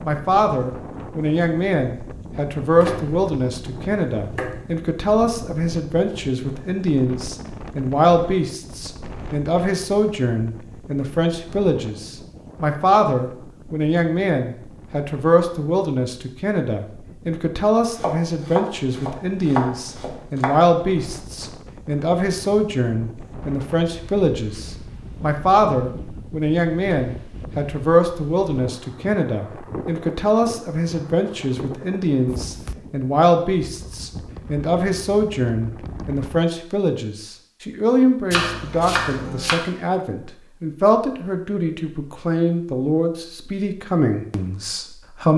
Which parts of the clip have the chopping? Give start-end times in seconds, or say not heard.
2.8-4.7, 18.0-20.6, 38.3-39.5.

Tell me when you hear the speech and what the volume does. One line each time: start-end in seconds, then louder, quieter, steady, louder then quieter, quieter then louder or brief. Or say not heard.
0.0-45.3 steady.